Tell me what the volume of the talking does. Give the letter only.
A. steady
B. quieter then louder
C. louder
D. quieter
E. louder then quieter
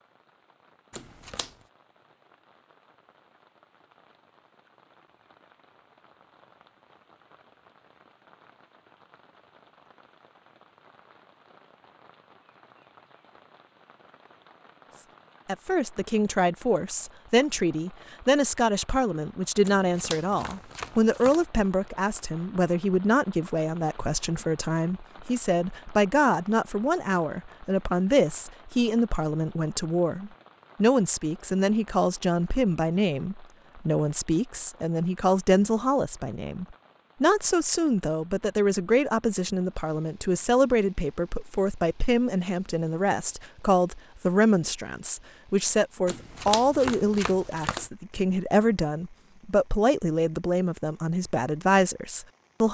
A.